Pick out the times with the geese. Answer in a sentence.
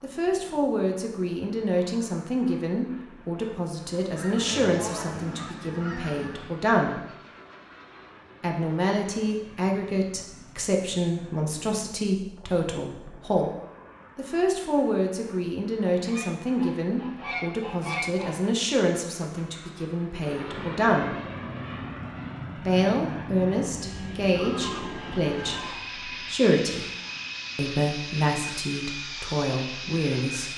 The geese can be heard from 4.2 to 6.5 s, from 15.9 to 18.4 s and from 24.3 to 26.0 s.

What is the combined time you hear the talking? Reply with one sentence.
The talking can be heard for 26 seconds in total.